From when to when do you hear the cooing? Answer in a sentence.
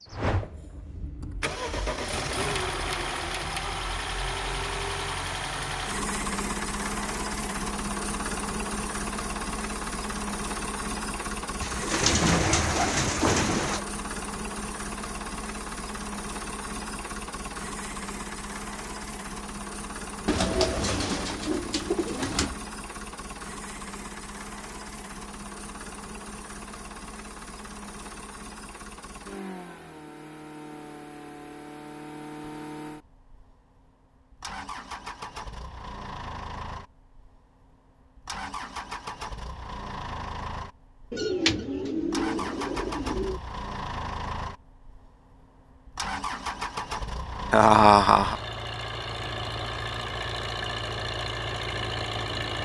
You can hear the cooing from 11.6 to 13.8 s, from 20.2 to 22.6 s and from 41.1 to 43.4 s.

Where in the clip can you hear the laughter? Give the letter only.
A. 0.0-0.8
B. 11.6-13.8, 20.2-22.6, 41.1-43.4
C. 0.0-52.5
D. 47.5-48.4
D.